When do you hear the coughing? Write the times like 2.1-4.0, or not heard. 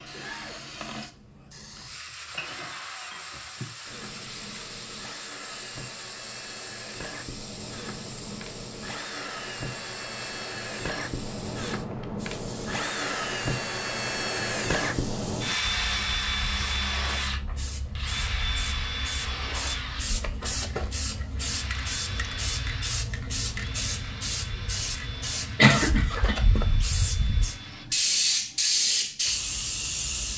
25.6-26.4.